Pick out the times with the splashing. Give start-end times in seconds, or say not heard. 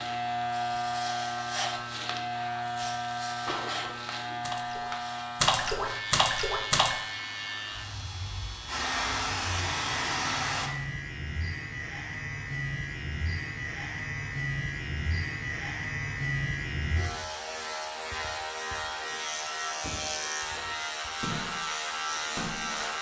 3.5-7.0, 20.5-22.9.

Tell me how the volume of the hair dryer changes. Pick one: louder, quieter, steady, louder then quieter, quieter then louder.
louder.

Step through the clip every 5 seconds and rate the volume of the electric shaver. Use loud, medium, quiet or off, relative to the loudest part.
loud, medium, loud, loud, loud.